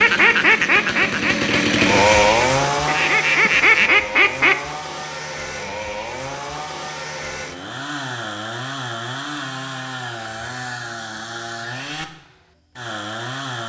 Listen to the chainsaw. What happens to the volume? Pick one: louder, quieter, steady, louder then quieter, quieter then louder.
quieter.